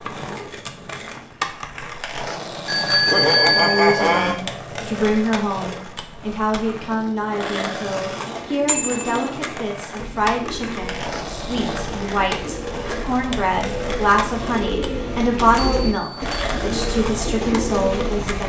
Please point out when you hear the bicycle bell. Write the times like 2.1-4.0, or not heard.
2.6-4.3, 8.7-9.3, 15.6-16.4.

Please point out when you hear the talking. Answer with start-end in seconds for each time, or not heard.
3.5-18.4.